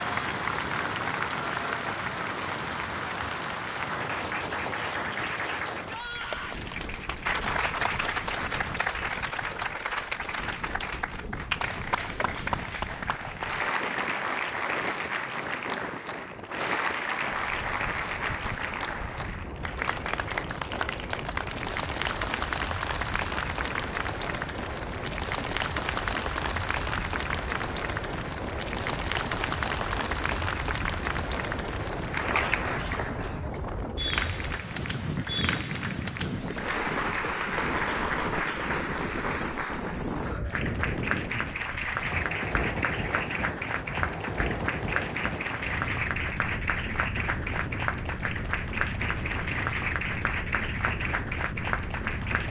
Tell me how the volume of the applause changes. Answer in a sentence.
The volume of the applause stays about the same.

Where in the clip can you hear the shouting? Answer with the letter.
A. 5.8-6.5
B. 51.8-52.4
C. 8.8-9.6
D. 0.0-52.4
A.